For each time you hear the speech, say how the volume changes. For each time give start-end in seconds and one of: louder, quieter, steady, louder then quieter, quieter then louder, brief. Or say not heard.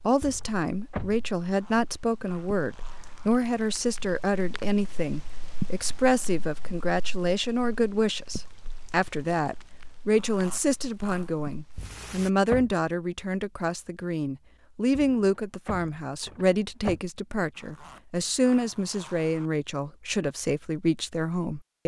0.0-21.8 steady.